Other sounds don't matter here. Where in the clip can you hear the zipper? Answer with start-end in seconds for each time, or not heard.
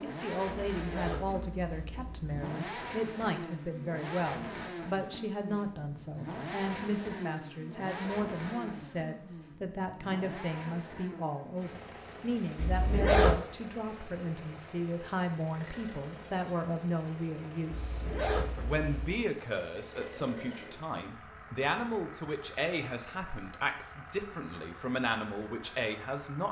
0.7-2.4, 12.6-13.4, 17.7-19.2.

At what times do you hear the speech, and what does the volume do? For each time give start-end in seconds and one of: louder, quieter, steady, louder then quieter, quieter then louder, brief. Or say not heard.
0.0-26.4 steady.